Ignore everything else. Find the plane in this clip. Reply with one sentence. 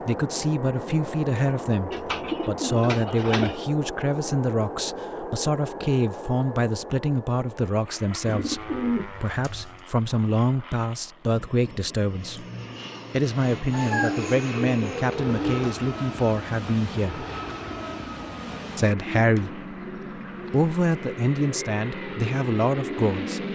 The plane can be heard from 0.0 to 23.5 s.